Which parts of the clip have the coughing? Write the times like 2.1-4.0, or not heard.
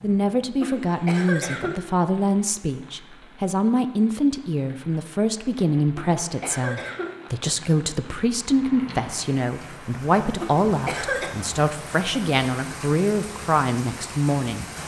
0.6-1.8, 6.0-7.2, 10.4-11.3.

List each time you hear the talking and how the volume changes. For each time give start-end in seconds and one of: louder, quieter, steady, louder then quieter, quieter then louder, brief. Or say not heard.
0.0-14.7 steady.